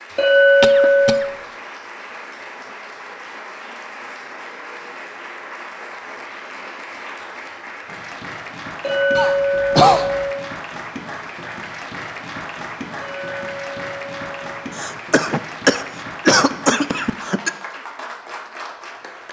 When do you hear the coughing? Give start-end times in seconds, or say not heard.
0.6-1.2, 9.2-10.2, 14.8-17.5.